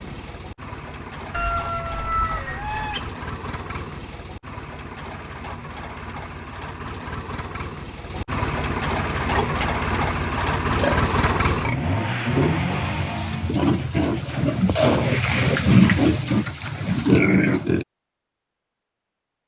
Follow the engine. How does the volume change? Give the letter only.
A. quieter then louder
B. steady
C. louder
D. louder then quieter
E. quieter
C.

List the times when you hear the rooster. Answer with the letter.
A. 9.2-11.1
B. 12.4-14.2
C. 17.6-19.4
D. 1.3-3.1
D.